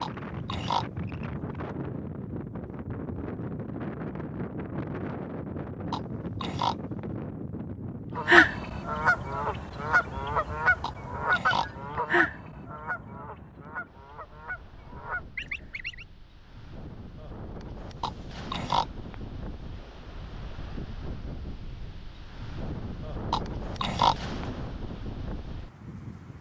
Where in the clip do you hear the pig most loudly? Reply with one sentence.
The volume of the pig peaks at 24 seconds.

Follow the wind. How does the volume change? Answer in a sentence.
The volume of the wind goes down, then up.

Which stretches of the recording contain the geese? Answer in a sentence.
You can hear the geese from 8.2 to 16.1 s.